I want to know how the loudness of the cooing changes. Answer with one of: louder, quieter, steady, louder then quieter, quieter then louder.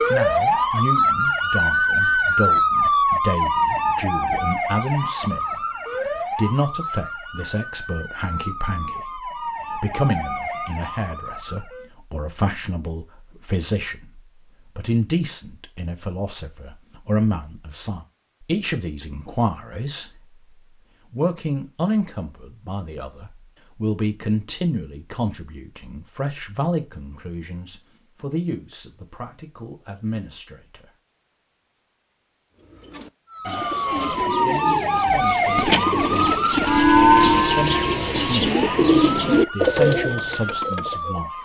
louder.